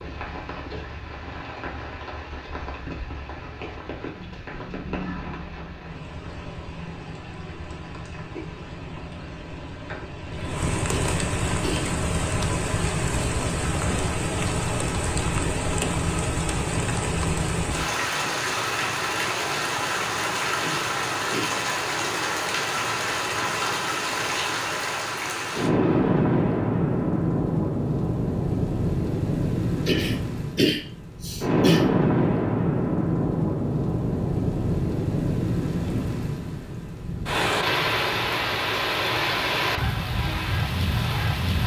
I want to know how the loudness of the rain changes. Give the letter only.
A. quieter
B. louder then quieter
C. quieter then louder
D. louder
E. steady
D.